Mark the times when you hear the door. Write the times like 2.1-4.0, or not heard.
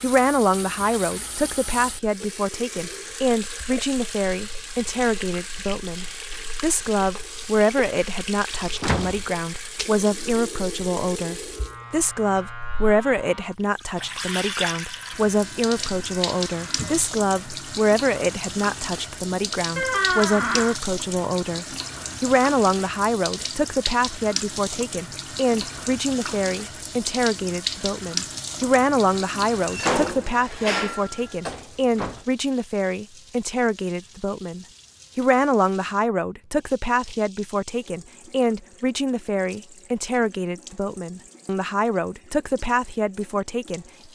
8.8-9.2, 19.8-20.8, 29.6-32.2.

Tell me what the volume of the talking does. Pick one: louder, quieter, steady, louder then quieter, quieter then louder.
steady.